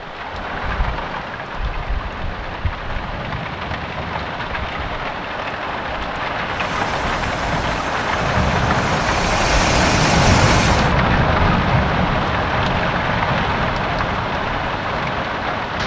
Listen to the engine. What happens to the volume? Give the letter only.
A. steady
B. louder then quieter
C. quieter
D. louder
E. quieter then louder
D.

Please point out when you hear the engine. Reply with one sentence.
The engine can be heard from 6.5 to 10.9 s.